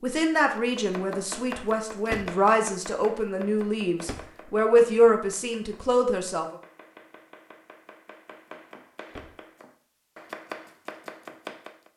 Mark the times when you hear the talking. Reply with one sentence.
You can hear the talking from 0.0 to 6.5 s.